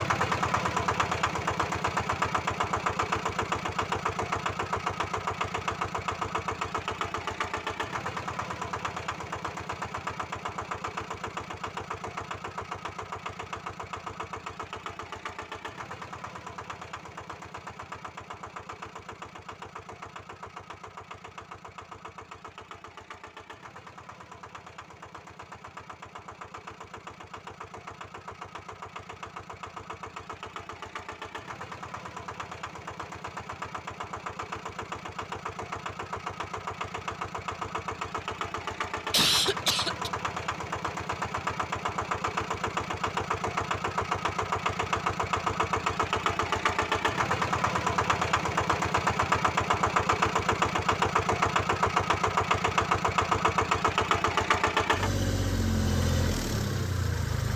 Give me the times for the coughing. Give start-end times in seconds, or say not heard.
39.1-40.1.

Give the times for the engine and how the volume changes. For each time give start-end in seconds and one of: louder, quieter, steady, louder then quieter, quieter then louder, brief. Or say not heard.
0.0-57.5 quieter then louder.